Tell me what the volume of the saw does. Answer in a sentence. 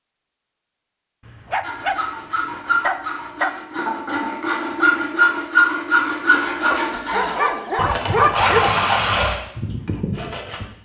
The loudness of the saw goes up, then down.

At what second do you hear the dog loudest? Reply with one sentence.
The loudest moment of the dog is at 8 seconds.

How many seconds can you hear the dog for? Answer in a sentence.
You can hear the dog for 4 seconds altogether.